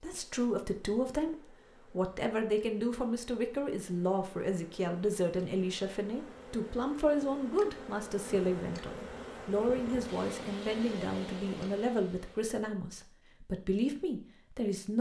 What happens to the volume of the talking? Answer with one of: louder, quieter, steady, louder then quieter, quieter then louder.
steady.